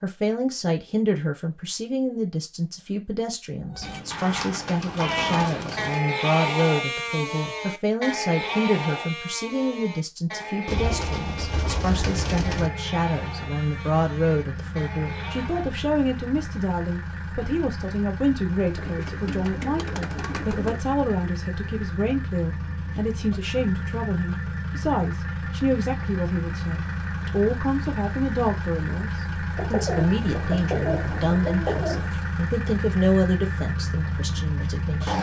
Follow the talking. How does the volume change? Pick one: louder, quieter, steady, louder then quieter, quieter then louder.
steady.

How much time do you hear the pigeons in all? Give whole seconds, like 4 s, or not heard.
9 s.